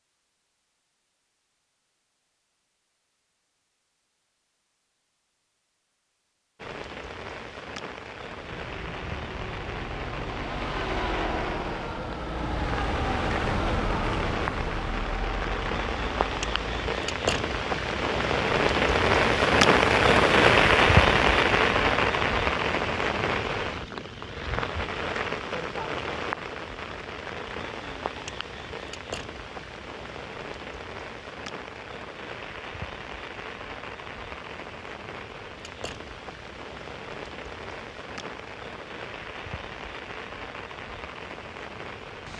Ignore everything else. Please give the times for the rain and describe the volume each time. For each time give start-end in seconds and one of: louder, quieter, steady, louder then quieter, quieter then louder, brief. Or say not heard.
6.5-42.3 louder then quieter.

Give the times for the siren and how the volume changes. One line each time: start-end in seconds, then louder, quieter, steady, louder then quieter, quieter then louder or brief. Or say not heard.
not heard.